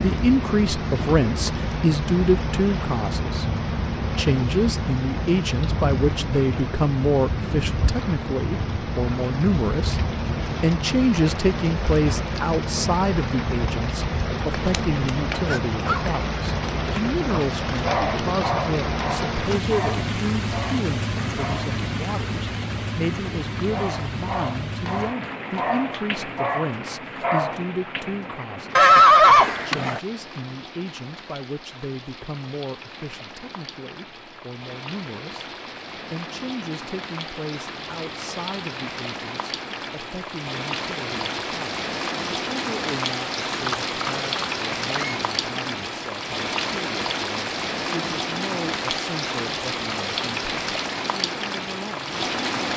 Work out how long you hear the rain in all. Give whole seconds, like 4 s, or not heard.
53 s.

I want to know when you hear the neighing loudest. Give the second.
29 s.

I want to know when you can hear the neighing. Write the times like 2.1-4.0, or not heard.
14.7-15.6, 28.8-30.0, 43.6-45.2.